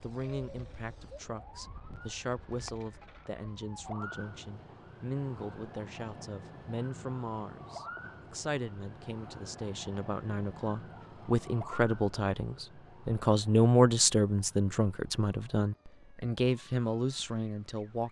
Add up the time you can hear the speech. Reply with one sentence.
You can hear the speech for 18 seconds altogether.